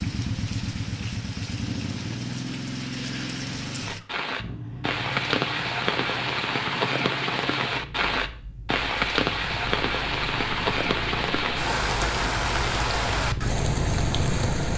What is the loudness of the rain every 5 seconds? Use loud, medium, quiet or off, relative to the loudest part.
medium, loud, loud.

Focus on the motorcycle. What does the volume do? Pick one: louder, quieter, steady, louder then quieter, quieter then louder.
quieter then louder.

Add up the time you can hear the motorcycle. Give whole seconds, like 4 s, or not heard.
15 s.